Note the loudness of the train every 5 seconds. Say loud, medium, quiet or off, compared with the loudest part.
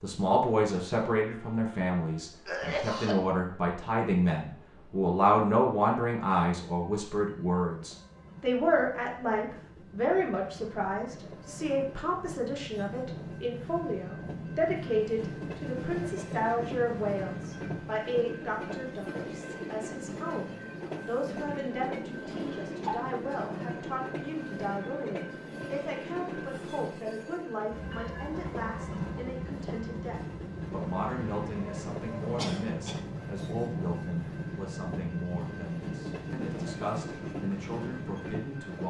quiet, quiet, medium, loud, loud, loud, loud, loud.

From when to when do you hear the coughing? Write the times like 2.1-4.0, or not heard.
2.5-3.2, 22.4-22.9, 32.4-33.1.